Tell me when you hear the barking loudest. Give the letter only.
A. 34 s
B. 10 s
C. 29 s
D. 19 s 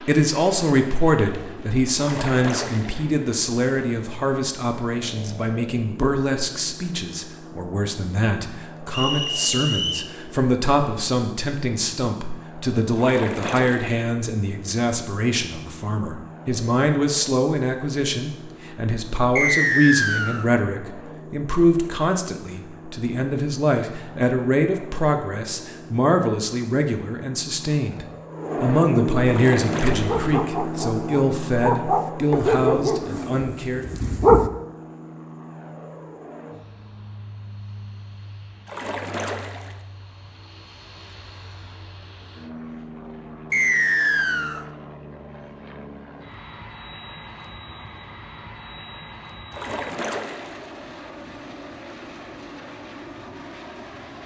A.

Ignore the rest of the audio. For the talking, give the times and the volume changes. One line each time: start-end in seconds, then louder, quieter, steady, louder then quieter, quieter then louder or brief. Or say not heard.
0.0-33.9 steady.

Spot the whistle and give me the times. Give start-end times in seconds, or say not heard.
8.9-10.1, 19.4-20.4, 43.5-44.6.